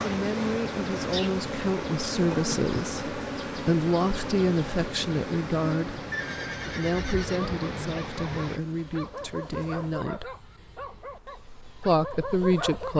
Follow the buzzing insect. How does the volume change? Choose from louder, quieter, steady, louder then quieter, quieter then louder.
quieter.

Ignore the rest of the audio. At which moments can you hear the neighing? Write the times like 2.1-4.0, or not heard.
6.1-7.5.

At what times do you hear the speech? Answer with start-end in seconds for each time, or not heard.
0.0-6.0, 6.7-10.3, 11.8-12.9.